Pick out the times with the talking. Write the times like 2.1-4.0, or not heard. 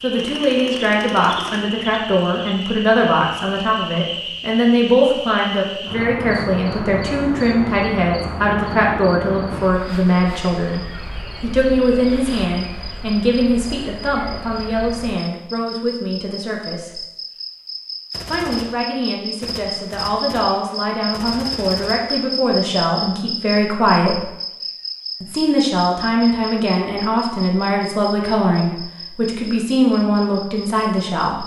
0.0-10.8, 11.4-17.0, 18.3-24.3, 25.2-31.4.